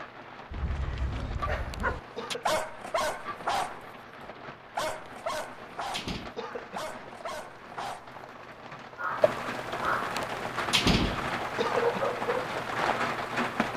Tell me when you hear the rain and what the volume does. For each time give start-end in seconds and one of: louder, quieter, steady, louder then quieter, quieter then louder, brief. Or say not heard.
0.0-13.7 louder.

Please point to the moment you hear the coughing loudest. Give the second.
12 s.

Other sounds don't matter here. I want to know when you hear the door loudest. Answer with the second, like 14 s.
11 s.